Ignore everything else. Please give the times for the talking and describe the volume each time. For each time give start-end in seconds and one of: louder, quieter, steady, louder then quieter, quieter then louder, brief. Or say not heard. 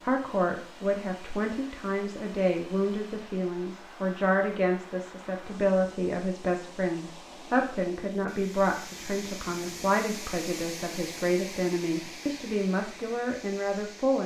0.0-14.2 steady.